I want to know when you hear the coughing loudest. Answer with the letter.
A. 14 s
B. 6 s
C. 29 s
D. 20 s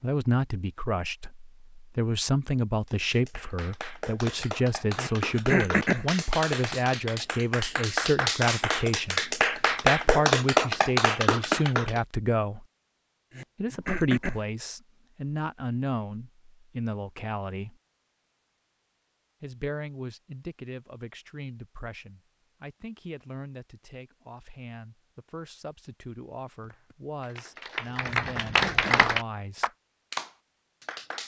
B.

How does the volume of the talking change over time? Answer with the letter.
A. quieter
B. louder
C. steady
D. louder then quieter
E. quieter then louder
A.